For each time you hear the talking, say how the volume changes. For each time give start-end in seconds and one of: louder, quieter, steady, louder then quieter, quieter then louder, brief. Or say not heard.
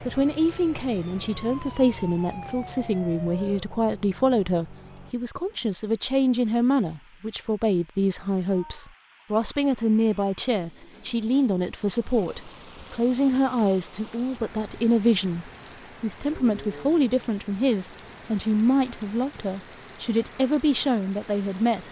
0.0-21.8 steady.